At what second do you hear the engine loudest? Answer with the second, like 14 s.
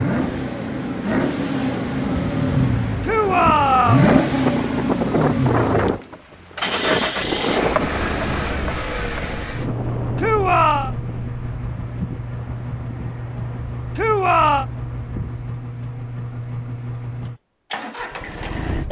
4 s.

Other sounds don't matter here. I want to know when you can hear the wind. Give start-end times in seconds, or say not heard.
0.0-15.4.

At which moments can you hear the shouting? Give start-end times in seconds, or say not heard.
3.0-4.1, 10.2-10.9, 13.9-14.7.